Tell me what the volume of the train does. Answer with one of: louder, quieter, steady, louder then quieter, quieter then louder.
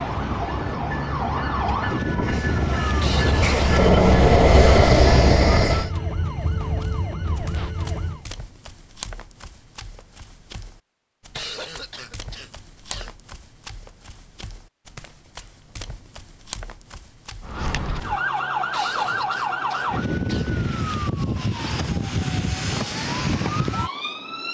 louder.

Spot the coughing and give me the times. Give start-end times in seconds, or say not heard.
3.0-3.5, 11.3-13.2, 18.7-20.5.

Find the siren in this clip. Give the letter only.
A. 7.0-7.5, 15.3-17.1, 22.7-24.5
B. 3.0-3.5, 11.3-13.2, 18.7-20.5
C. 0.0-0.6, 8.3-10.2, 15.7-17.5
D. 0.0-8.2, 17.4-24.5
D.